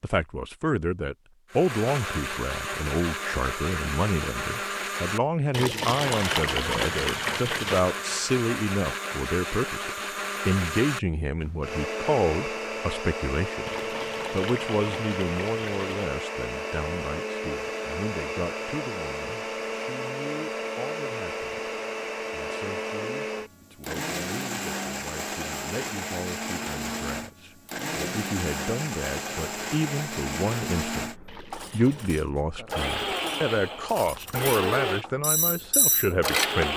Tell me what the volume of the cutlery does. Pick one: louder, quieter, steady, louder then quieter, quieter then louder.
louder.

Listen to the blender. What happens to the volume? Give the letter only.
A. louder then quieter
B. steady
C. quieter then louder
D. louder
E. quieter
B.